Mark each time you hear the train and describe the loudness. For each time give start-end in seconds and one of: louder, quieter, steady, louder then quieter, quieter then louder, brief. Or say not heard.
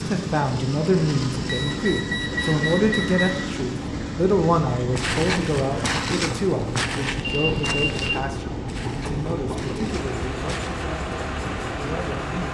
0.0-12.4 steady.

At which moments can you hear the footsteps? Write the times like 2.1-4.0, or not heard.
5.0-10.8.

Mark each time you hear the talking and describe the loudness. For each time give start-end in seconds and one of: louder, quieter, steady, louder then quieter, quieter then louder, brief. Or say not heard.
0.0-12.4 quieter.